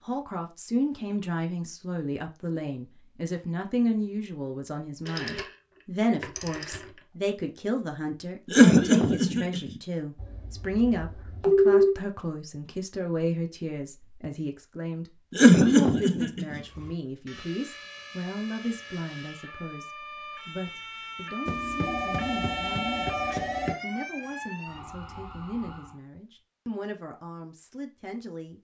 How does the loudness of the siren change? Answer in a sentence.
The loudness of the siren goes up, then down.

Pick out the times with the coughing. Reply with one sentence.
The coughing can be heard from 8.5 to 9.7 s and from 15.3 to 16.6 s.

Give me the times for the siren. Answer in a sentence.
You can hear the siren from 16.6 to 26.0 s.